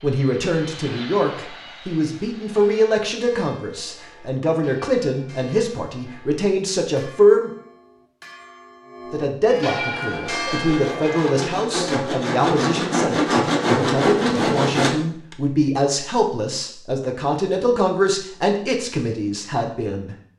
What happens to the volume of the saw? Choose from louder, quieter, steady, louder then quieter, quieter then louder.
louder.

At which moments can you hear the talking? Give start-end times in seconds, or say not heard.
0.0-7.5, 9.1-20.1.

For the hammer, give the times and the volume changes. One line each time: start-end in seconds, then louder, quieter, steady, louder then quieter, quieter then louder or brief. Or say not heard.
not heard.